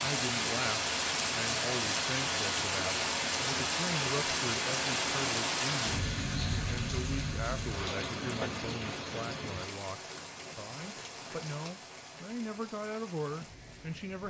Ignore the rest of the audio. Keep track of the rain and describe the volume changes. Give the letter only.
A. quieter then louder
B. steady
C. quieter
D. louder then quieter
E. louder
C.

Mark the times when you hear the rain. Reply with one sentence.
The rain can be heard from 0.0 to 14.2 s.